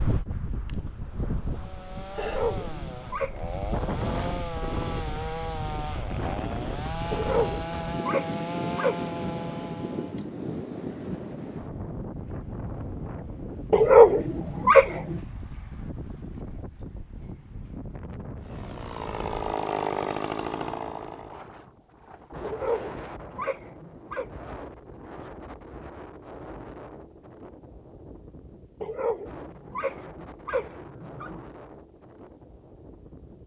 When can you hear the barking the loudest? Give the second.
14 s.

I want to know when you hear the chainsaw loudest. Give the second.
20 s.